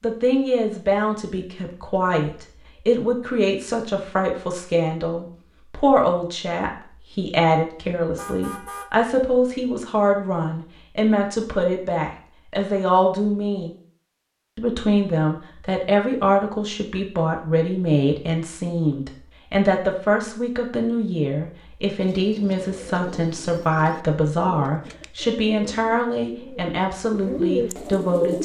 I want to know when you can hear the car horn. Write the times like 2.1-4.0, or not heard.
8.2-8.9.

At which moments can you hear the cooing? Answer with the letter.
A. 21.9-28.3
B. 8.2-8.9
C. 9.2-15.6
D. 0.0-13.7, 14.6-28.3
A.